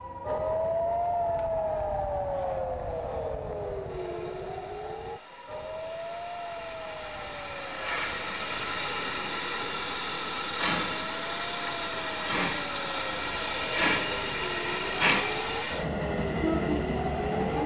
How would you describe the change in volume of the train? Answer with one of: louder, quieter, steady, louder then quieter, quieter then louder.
louder.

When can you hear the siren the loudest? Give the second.
1 s.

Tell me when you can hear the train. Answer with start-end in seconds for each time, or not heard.
0.0-17.6.